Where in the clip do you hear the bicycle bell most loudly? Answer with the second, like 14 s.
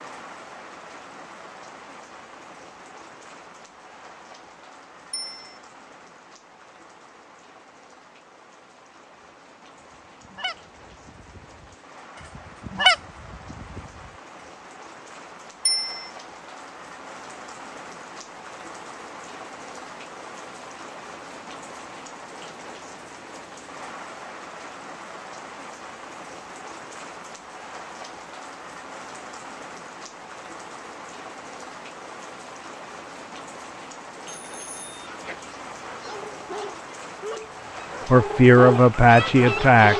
16 s.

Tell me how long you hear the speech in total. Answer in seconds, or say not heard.
2 s.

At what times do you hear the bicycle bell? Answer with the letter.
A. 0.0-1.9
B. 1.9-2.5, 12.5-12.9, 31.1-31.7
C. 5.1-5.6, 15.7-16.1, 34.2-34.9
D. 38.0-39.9
C.